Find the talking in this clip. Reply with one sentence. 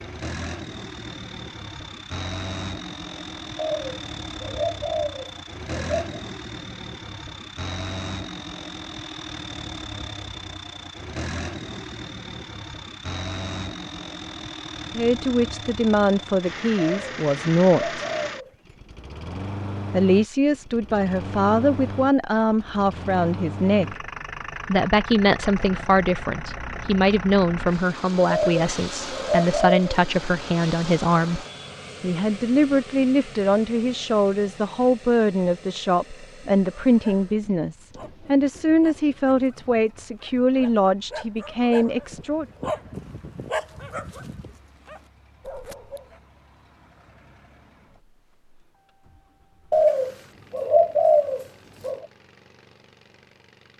You can hear the talking from 14.9 to 18.0 s, from 19.9 to 23.9 s and from 24.6 to 42.5 s.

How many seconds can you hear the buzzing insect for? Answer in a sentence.
The buzzing insect can't be heard in this clip.